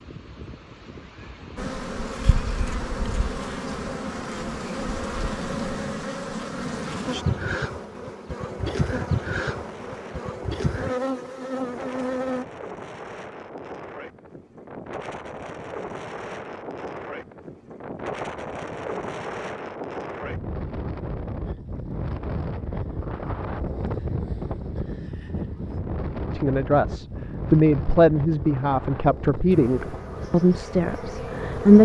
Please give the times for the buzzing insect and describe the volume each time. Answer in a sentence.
The buzzing insect can be heard from 1.6 to 12.4 s, at a steady volume; and briefly from 29.5 to 31.8 s.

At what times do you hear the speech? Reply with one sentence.
The speech can be heard from 26.3 to 31.8 s.